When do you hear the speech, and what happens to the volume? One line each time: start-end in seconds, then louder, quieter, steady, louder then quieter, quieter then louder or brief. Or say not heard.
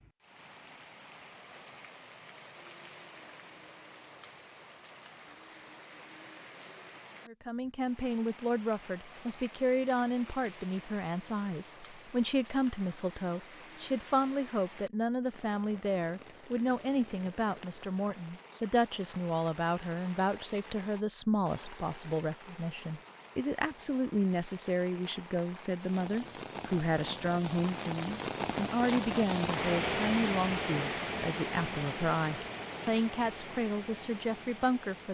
7.2-35.0 steady.